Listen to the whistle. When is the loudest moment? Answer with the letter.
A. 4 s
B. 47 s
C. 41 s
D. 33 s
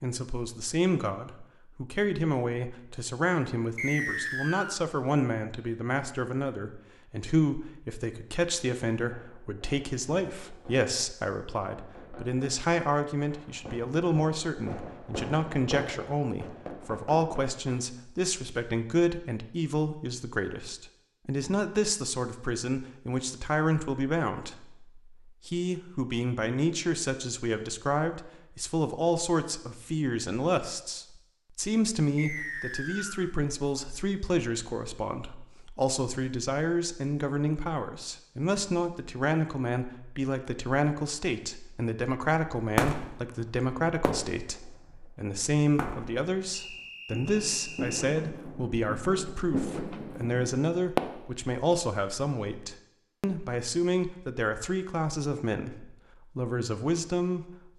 A.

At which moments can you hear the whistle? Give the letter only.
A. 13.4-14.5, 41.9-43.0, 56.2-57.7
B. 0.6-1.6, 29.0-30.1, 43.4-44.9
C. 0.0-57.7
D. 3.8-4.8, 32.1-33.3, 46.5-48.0
D.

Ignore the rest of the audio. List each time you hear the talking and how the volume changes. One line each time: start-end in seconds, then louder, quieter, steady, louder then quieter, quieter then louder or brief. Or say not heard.
0.0-57.7 steady.